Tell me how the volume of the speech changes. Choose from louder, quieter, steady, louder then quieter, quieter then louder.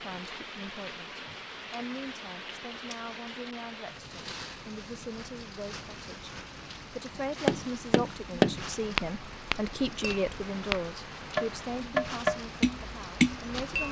louder then quieter.